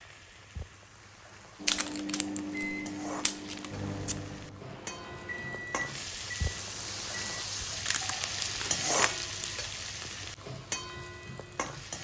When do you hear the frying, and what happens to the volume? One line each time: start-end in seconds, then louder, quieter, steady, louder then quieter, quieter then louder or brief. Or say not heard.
0.0-11.9 louder then quieter.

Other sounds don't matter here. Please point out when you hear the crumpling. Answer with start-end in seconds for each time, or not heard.
1.6-4.2, 7.8-9.2.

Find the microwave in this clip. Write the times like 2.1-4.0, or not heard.
1.6-7.5.